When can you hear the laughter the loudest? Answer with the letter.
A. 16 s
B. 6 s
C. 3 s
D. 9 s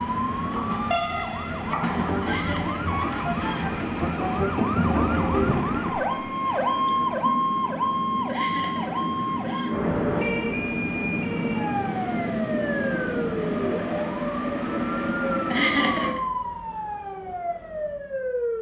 A.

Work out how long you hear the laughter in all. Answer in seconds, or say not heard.
4 s.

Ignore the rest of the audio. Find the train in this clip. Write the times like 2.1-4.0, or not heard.
0.0-16.1.